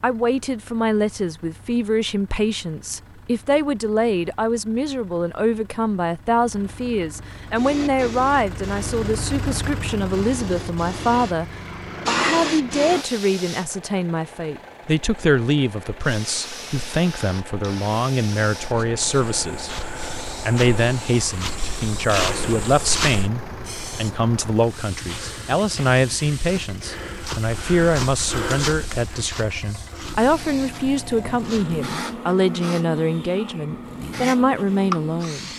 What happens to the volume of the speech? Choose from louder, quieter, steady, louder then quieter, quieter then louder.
steady.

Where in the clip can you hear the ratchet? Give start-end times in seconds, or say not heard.
not heard.